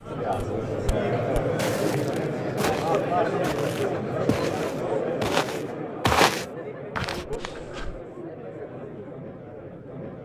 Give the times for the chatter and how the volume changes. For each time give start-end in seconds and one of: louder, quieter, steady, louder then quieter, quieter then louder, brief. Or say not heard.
0.0-10.1 quieter.